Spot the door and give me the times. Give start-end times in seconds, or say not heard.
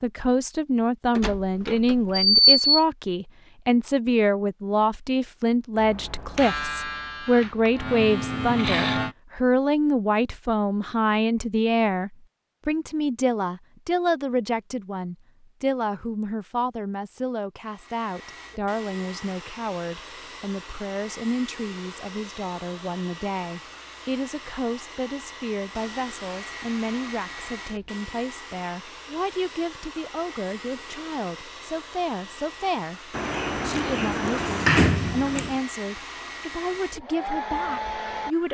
1.1-2.9, 33.1-35.5.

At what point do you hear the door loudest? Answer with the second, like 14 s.
2 s.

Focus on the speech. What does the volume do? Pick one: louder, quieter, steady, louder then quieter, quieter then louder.
quieter.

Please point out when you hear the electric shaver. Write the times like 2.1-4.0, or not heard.
5.8-9.2.